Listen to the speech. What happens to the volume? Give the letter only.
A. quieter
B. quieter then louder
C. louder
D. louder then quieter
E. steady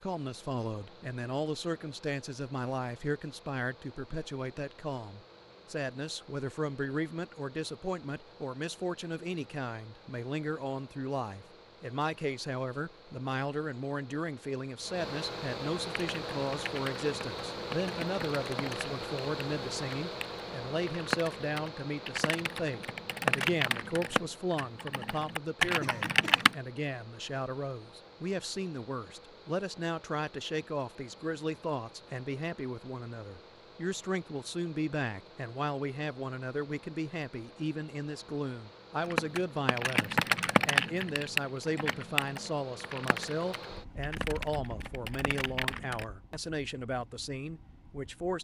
E.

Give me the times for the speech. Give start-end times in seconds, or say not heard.
0.0-48.4.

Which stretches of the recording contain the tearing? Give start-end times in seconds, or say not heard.
not heard.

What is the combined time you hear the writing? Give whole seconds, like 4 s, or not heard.
not heard.